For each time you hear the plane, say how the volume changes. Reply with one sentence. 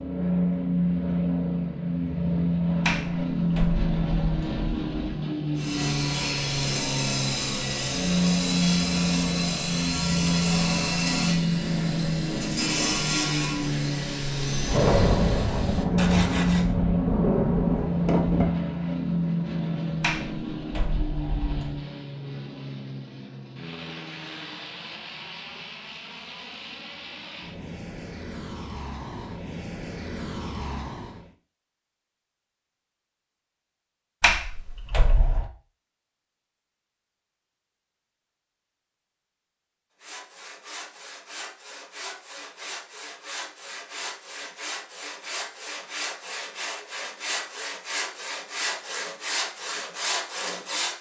The plane can be heard from 0.0 to 31.3 s, getting quieter.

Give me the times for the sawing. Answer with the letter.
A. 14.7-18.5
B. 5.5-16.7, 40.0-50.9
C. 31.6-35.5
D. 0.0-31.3
B.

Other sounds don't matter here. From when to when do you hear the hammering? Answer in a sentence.
You can't hear the hammering here.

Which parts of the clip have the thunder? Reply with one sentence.
You can hear the thunder from 14.7 to 18.5 s.